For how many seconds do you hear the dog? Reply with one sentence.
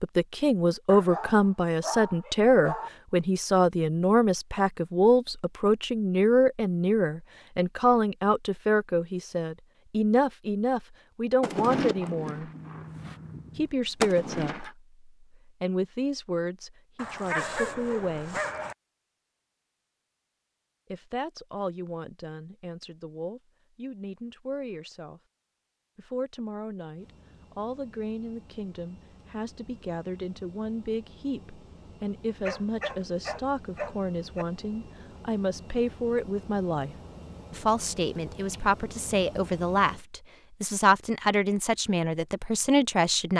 The dog can be heard for 6 seconds in total.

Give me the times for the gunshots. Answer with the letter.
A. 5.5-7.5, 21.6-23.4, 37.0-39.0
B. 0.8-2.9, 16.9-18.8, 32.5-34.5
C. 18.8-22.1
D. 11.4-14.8
D.